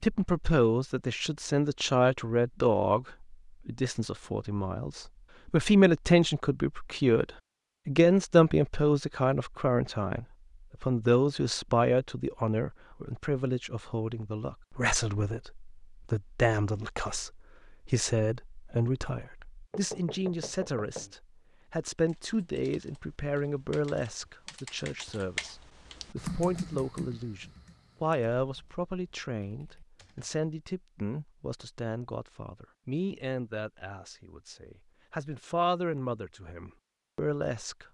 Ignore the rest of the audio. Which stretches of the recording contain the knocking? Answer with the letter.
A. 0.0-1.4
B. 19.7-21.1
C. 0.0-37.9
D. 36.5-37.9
B.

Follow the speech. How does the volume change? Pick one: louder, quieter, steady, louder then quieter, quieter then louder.
quieter.